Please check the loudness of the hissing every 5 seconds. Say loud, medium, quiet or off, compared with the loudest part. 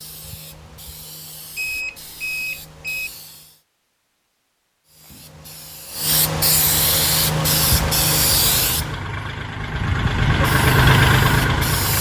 quiet, loud, medium.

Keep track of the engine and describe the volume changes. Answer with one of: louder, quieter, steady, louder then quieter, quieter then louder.
louder.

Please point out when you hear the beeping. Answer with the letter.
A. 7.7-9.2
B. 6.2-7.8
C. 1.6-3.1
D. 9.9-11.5
C.